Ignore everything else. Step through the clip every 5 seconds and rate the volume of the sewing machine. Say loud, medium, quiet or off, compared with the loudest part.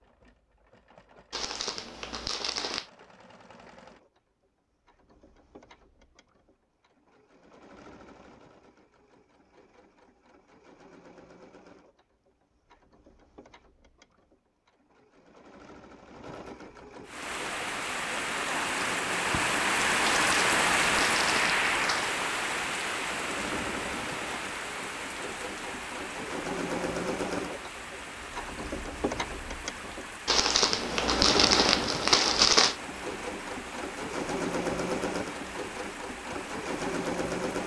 quiet, quiet, quiet, quiet, medium, loud, loud, loud.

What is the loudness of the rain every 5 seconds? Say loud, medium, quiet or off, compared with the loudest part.
off, off, off, loud, loud, quiet, quiet, quiet.